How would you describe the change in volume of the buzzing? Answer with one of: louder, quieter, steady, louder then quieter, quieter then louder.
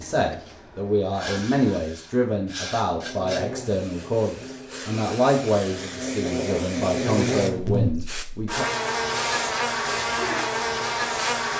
louder.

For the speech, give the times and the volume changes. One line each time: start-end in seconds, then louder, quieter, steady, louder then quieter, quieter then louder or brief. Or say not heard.
0.0-8.7 steady.